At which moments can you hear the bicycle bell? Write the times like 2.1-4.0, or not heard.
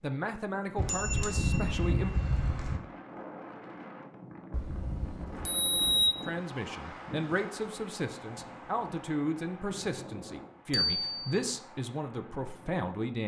0.8-2.8, 4.5-6.2, 10.7-11.4.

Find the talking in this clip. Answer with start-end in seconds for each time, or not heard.
0.0-2.1, 6.2-13.2.